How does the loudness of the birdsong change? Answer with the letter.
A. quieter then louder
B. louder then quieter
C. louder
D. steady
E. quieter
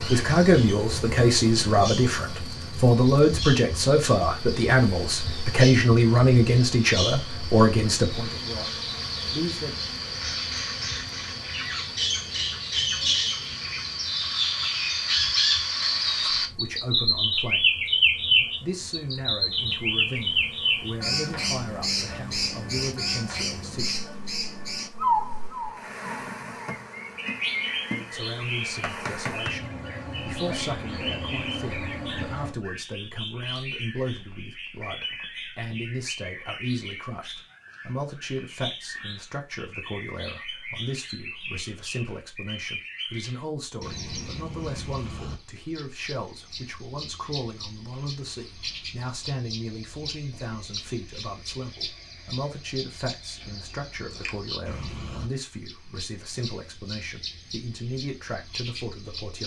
B.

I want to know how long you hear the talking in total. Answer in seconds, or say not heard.
48 s.